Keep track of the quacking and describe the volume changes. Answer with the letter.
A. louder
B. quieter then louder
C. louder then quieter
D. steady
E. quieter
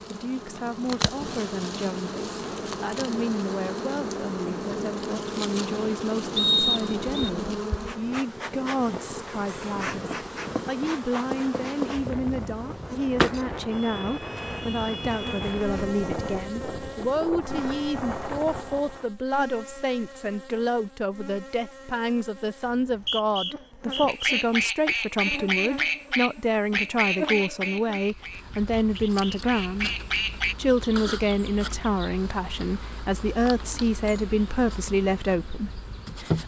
B.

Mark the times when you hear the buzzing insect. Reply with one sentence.
The buzzing insect can be heard from 0.0 to 36.4 s.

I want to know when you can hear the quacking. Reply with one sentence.
The quacking can be heard from 24.1 to 30.6 s.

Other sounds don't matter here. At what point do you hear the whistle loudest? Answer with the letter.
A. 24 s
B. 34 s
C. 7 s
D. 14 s
C.